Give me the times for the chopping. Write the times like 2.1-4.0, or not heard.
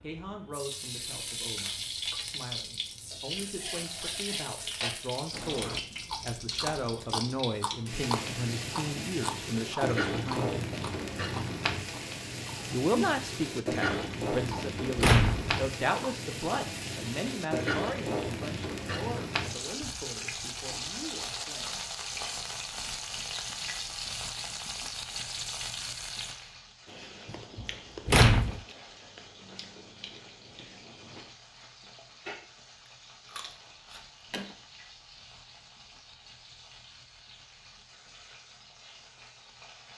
not heard.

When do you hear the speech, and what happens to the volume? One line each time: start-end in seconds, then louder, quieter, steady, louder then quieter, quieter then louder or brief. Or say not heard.
0.0-10.8 louder
12.7-21.8 quieter.